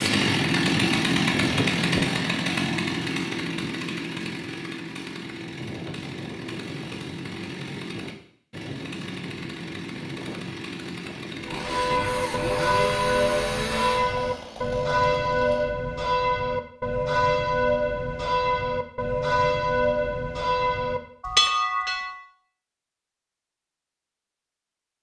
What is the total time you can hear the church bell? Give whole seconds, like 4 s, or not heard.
11 s.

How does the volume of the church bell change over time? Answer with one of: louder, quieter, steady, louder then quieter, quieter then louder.
steady.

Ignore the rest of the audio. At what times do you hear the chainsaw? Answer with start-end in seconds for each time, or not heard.
0.0-15.7.